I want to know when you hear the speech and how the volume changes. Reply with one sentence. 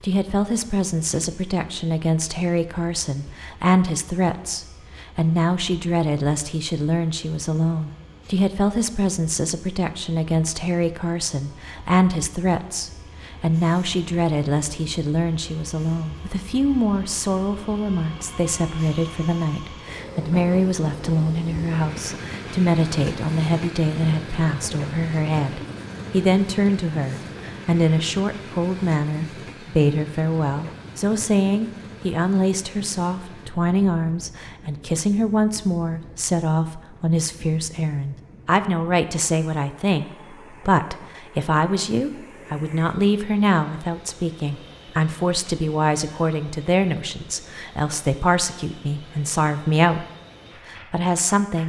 The speech can be heard from 0.0 to 50.0 s, at a steady volume; and briefly from 50.6 to 51.6 s.